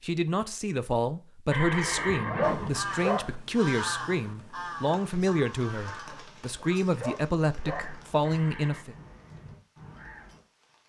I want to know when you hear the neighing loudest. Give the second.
2 s.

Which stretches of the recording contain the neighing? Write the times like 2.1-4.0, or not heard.
1.5-2.8, 8.2-8.8.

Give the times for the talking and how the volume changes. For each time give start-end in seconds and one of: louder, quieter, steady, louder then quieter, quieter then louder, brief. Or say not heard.
0.0-8.9 steady.